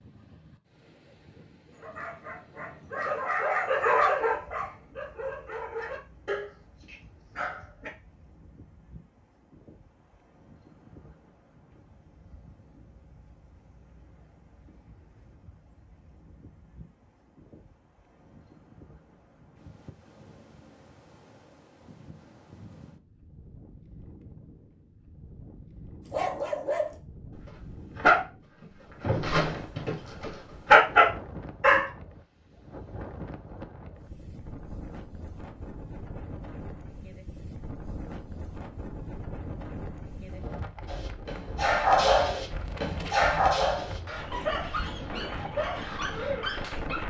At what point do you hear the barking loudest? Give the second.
31 s.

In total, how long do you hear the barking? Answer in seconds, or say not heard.
18 s.